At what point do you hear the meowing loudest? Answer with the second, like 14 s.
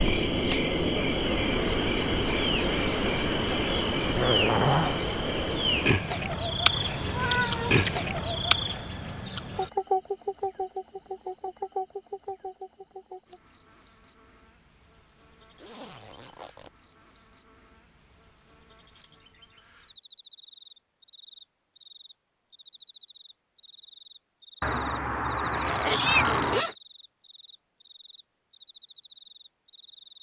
26 s.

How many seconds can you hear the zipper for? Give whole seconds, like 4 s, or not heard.
3 s.